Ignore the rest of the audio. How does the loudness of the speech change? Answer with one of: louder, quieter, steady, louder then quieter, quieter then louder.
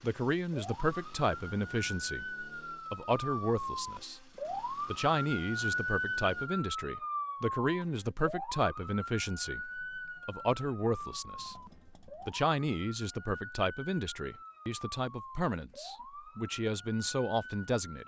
steady.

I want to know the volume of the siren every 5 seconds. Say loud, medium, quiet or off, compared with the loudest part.
loud, loud, medium, medium.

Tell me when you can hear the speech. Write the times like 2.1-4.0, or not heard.
0.0-18.0.